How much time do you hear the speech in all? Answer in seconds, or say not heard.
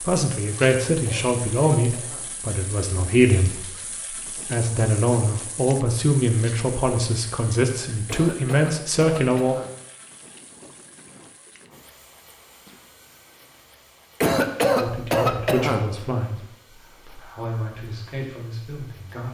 14 s.